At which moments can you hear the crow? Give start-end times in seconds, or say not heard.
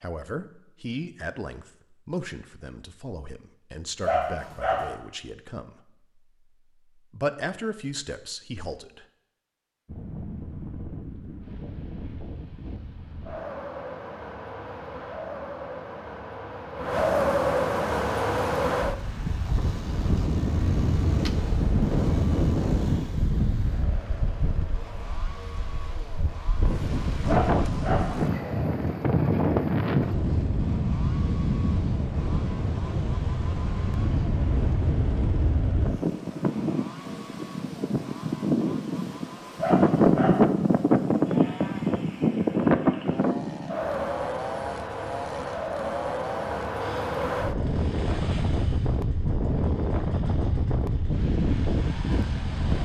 not heard.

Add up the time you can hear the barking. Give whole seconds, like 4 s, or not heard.
3 s.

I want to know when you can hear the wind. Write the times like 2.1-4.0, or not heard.
9.8-52.7.